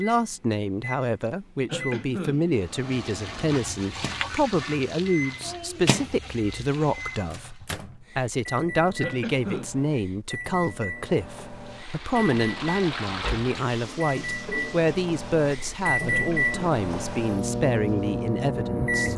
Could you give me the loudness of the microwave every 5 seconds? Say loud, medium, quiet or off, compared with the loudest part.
quiet, medium, medium, loud.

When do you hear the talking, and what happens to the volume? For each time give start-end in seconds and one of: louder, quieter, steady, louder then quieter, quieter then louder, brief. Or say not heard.
0.0-19.1 steady.